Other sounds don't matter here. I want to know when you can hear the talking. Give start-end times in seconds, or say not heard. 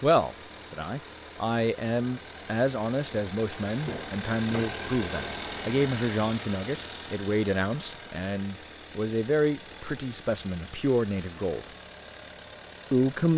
0.0-11.7, 12.9-13.3.